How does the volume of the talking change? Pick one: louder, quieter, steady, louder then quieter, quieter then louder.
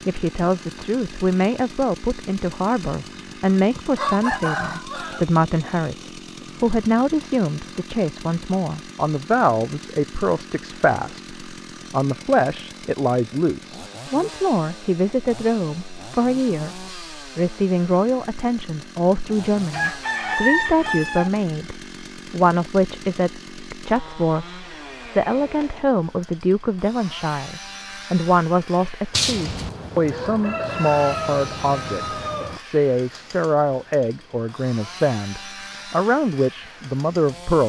steady.